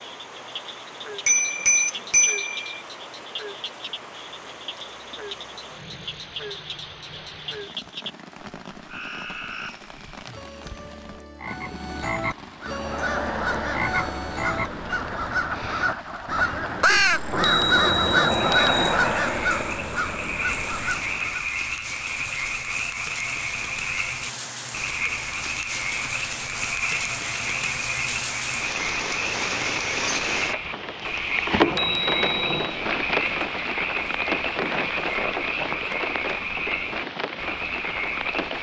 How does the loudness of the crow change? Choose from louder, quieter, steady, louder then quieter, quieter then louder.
louder then quieter.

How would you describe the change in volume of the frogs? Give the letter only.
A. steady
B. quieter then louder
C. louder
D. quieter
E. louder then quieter
C.